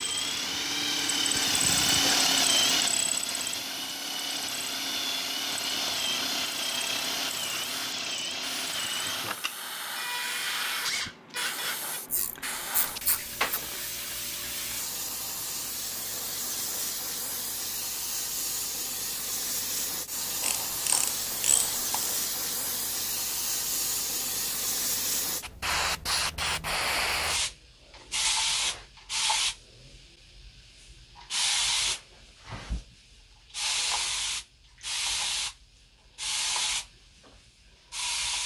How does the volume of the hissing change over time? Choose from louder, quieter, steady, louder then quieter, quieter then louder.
louder.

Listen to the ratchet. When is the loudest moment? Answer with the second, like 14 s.
21 s.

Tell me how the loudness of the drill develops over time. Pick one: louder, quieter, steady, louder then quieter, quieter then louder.
quieter.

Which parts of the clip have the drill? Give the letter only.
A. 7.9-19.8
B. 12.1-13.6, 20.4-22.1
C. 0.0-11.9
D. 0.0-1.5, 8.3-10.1
C.